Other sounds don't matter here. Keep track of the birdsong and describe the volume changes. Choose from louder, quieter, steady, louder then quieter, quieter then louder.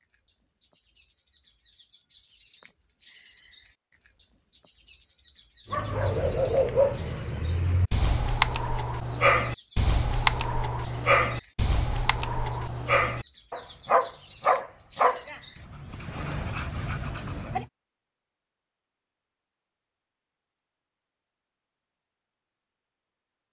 louder.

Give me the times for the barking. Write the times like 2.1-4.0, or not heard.
5.7-17.6.